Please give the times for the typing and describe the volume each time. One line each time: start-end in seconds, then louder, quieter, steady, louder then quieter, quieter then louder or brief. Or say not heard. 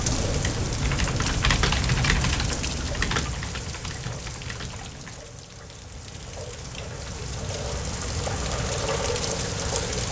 0.0-5.2 louder then quieter.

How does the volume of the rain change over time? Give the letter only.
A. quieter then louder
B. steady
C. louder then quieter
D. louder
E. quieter
A.